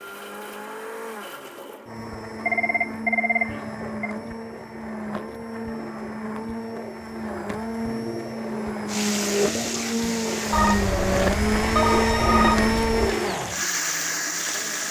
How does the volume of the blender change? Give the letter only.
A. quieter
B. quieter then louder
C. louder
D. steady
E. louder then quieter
C.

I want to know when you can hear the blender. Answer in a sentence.
The blender can be heard from 0.0 to 14.8 s.